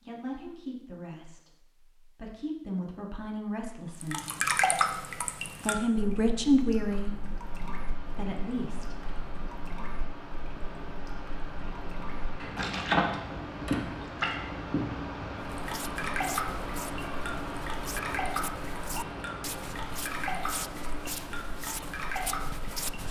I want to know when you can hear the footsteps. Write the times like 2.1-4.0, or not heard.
15.6-23.0.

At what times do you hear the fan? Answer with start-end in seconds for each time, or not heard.
7.2-23.0.